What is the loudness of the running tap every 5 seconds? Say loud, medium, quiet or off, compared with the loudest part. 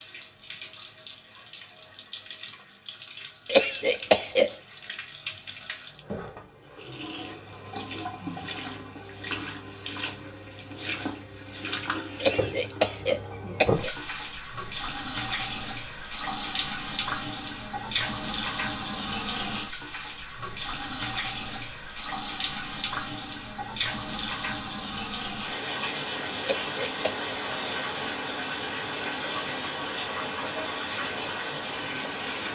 medium, medium, loud, loud, loud, loud, loud.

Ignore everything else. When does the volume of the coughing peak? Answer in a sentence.
The volume of the coughing peaks at 4 seconds.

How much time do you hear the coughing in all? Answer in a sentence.
You can hear the coughing for 4 seconds altogether.